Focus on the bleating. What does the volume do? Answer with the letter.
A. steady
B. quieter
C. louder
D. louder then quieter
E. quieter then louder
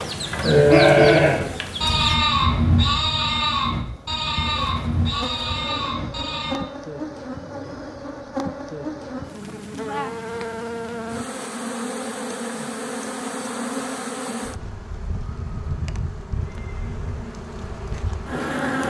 B.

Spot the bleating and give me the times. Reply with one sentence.
You can hear the bleating from 0.3 to 6.5 s.